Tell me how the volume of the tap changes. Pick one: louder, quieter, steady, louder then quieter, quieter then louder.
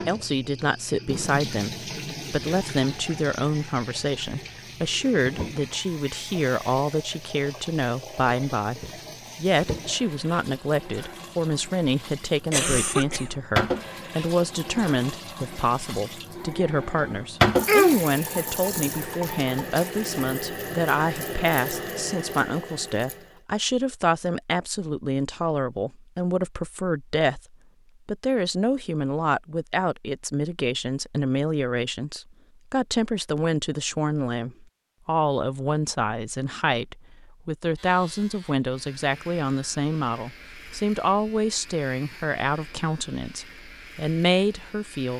louder then quieter.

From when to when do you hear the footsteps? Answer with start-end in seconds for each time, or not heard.
not heard.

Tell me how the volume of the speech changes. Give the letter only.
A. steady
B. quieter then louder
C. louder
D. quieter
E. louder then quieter
A.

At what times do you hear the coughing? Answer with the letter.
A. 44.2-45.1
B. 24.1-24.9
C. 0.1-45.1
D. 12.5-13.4
D.